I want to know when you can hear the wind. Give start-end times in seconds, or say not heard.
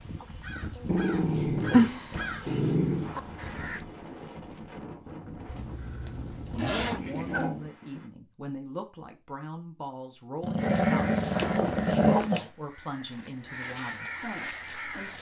0.0-8.1.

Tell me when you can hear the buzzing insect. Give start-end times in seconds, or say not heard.
not heard.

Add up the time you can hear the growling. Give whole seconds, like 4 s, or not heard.
5 s.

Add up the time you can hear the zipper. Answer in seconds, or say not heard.
4 s.